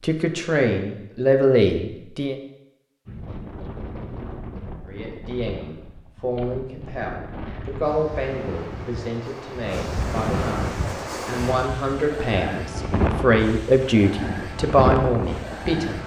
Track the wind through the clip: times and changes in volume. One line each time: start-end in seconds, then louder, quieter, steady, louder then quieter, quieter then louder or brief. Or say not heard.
3.0-16.0 louder.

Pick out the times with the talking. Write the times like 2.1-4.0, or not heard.
0.0-2.4, 4.8-16.0.